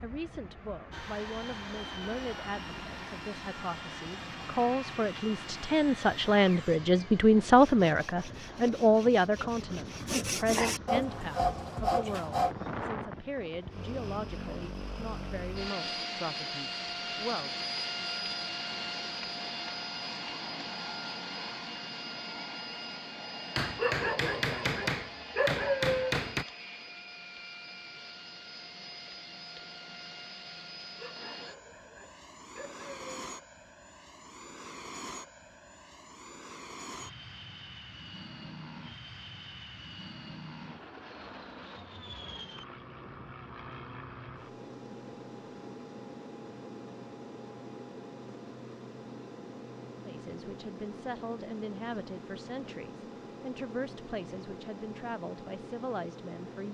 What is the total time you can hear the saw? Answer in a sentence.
You can hear the saw for 12 seconds altogether.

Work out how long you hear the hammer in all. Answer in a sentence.
The hammer can be heard for 3 seconds in total.